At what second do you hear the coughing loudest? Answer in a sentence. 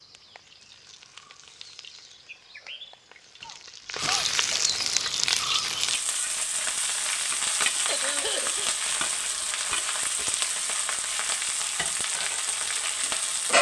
The loudest moment of the coughing is at 8 seconds.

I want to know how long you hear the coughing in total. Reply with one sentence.
The coughing can be heard for 2 seconds in total.